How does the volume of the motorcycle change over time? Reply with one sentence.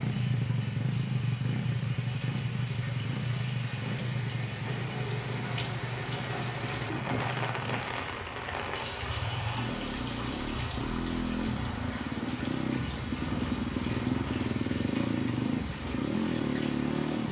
The loudness of the motorcycle goes down, then up.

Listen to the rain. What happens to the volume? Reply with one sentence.
The volume of the rain goes up, then down.